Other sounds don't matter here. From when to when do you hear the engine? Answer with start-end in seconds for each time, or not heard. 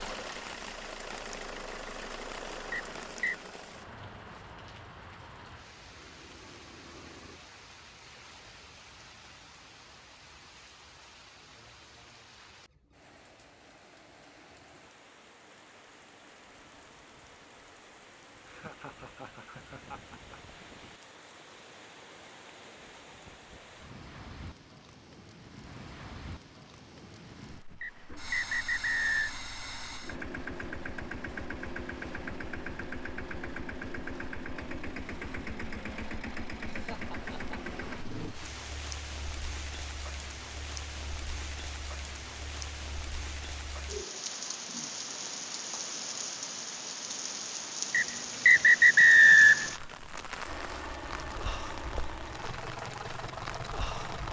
0.0-7.4, 28.1-38.4, 50.5-54.2.